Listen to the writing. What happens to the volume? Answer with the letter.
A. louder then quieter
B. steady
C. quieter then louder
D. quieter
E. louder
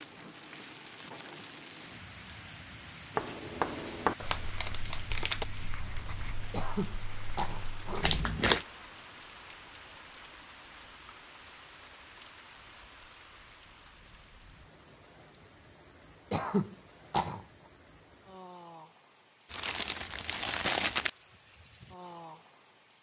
D.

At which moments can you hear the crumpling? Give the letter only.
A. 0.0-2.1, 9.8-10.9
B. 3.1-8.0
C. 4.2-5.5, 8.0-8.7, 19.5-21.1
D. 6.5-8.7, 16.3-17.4
C.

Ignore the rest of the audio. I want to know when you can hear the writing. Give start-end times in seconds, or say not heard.
3.1-8.0.